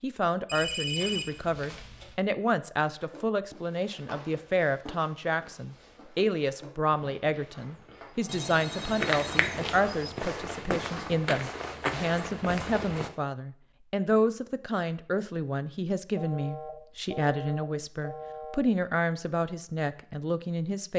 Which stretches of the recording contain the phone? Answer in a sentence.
The phone can be heard from 0.5 to 2.1 s, from 8.2 to 9.8 s and from 16.1 to 18.6 s.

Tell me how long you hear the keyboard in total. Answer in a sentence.
You can't hear the keyboard here.